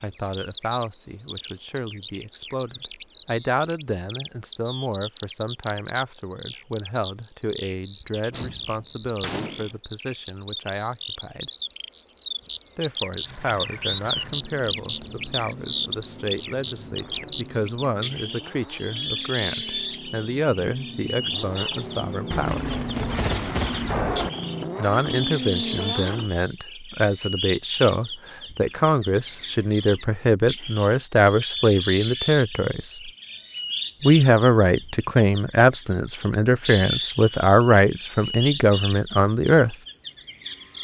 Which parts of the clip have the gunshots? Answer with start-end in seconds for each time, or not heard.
8.1-9.8, 22.3-24.3.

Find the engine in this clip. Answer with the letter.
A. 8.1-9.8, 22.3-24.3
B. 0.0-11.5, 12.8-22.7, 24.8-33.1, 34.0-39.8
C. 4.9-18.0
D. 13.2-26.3
D.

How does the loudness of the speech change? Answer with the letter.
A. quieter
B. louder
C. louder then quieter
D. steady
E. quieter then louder
B.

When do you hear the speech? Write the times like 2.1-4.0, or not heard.
0.0-11.5, 12.8-22.7, 24.8-33.1, 34.0-39.8.